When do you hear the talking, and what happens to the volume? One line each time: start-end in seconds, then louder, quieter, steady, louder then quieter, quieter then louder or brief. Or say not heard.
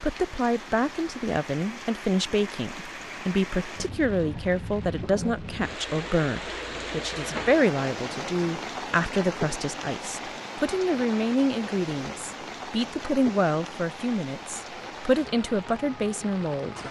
0.0-16.8 steady.